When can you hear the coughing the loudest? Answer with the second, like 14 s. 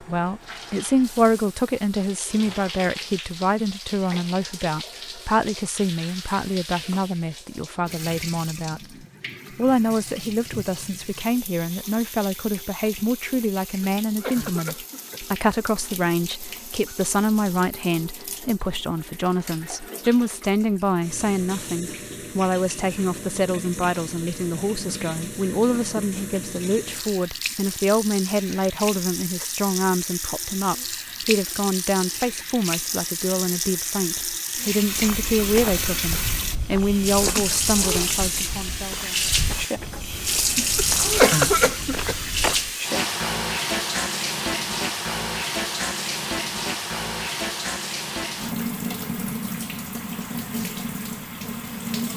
41 s.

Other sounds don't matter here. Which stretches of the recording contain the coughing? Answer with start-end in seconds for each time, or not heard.
13.8-15.2, 40.8-42.2.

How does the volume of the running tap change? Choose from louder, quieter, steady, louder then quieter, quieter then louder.
louder.